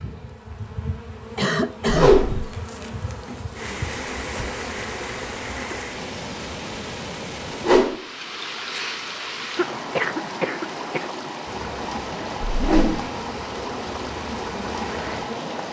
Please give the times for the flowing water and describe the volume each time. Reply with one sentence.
You can hear the flowing water from 3.5 to 15.6 s, at a steady volume.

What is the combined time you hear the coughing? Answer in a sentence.
The coughing can be heard for 2 seconds in total.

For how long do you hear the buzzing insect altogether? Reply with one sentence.
You can hear the buzzing insect for 10 seconds altogether.